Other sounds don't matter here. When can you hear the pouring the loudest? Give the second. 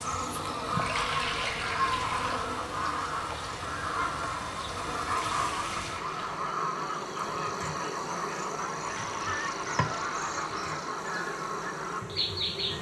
1 s.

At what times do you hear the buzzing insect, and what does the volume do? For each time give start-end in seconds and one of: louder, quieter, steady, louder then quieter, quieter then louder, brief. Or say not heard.
0.0-12.7 steady.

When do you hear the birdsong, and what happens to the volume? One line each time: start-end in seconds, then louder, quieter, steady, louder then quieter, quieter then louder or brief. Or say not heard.
0.0-12.7 steady.